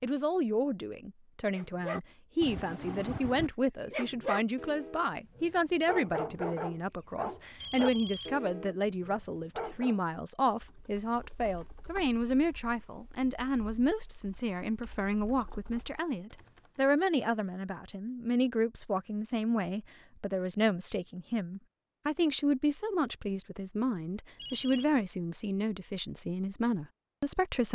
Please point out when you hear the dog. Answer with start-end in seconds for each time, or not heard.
1.6-10.0.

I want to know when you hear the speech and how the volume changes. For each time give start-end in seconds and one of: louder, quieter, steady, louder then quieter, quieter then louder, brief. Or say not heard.
0.0-27.7 steady.